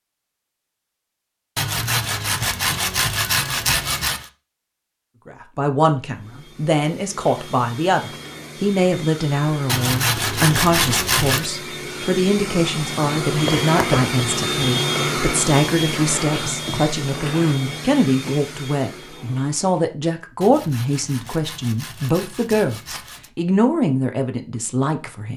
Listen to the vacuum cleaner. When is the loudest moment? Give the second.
15 s.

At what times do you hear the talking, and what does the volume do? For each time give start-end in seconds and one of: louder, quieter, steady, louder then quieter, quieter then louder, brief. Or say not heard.
5.2-25.3 steady.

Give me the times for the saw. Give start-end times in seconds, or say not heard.
1.6-4.3, 9.7-11.5, 20.4-23.3.